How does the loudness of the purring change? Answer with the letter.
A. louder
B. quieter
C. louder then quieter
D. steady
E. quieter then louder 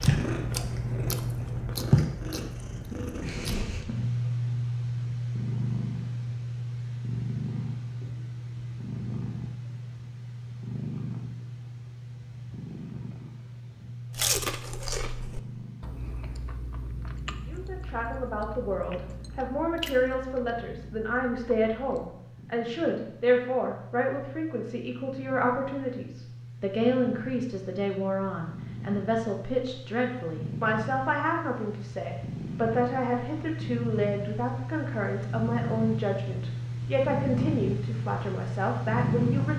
E.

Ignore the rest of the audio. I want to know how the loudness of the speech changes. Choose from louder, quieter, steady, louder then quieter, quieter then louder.
steady.